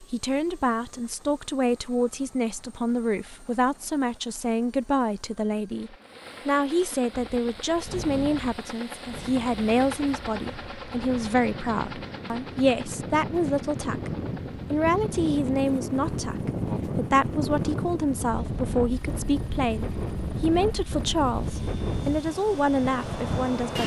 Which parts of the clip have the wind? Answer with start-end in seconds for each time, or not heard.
7.1-23.8.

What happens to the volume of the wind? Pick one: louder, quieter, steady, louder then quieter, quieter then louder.
louder.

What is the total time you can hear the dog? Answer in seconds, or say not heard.
not heard.